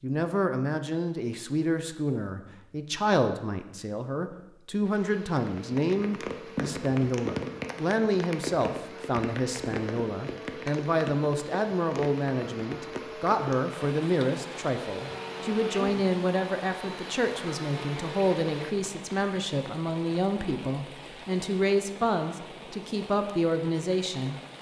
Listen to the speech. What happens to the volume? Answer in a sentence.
The volume of the speech stays about the same.